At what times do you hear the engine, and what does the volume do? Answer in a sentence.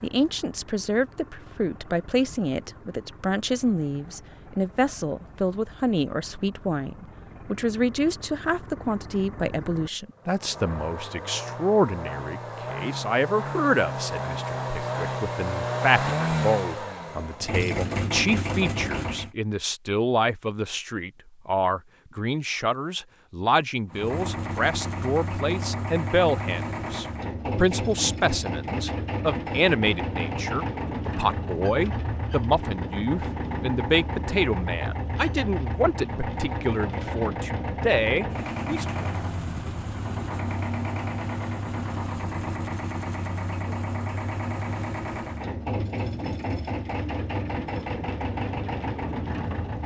You can hear the engine from 0.0 to 19.4 s, getting louder; and from 23.9 to 49.8 s, at a steady volume.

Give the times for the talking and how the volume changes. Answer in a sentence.
You can hear the talking from 0.0 to 39.0 s, at a steady volume.